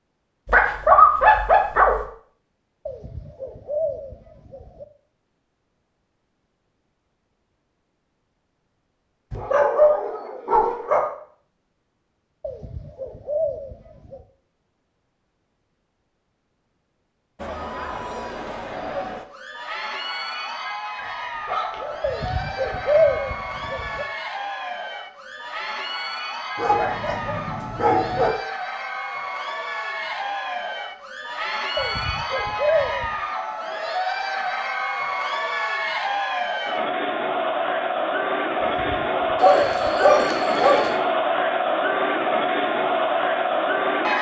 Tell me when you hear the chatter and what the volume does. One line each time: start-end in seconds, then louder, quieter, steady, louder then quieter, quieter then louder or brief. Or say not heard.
17.4-44.1 louder.